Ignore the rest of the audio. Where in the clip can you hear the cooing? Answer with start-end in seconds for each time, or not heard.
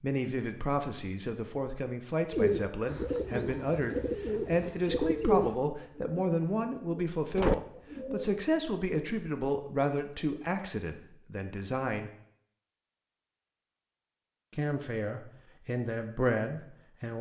2.3-8.3.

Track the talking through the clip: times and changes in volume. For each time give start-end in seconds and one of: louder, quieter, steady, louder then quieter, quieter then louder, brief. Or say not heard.
0.0-12.1 steady
14.5-17.1 brief.